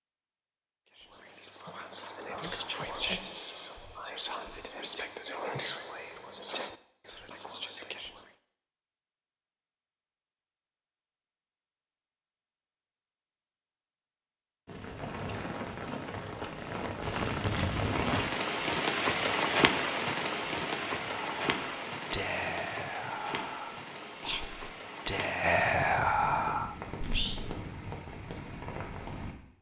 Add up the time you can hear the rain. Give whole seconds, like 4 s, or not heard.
15 s.